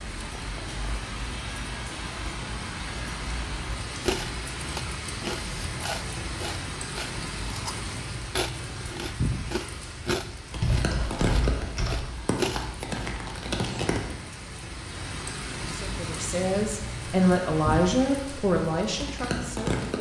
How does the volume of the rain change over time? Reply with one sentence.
The loudness of the rain stays about the same.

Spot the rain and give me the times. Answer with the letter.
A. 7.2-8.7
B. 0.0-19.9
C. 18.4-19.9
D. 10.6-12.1
B.